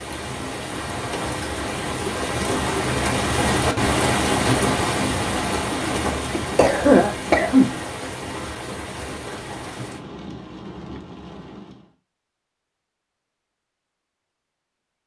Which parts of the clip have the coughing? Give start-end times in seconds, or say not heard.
6.3-7.8.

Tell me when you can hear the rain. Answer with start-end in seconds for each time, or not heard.
0.0-11.9.